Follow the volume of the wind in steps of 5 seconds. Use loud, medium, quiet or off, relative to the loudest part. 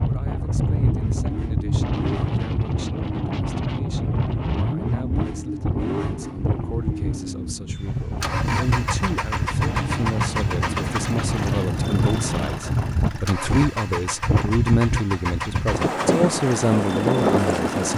loud, medium, loud, loud.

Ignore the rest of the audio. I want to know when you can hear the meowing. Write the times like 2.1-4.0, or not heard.
not heard.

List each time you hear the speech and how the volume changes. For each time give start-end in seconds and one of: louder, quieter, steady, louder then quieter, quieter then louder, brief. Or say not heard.
0.1-17.9 louder.